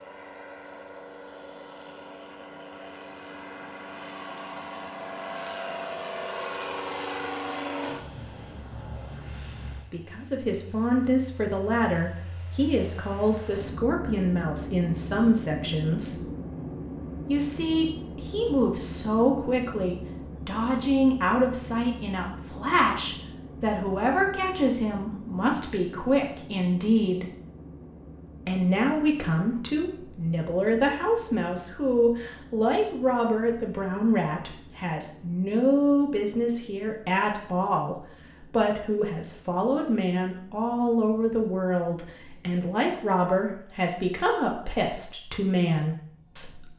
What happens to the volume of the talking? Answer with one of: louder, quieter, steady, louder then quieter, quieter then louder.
steady.